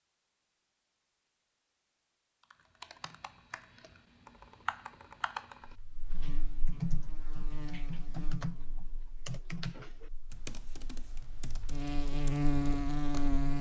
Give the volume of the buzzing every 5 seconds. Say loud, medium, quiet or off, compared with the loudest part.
off, quiet, loud.